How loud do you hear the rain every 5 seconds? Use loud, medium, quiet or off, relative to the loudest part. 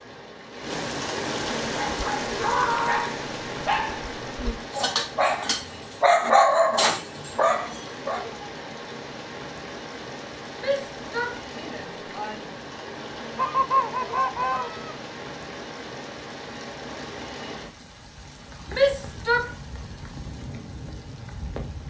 loud, medium, medium, medium, medium.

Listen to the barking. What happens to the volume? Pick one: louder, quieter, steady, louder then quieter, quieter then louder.
louder then quieter.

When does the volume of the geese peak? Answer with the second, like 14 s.
14 s.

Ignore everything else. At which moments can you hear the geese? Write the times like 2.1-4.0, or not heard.
13.3-14.9.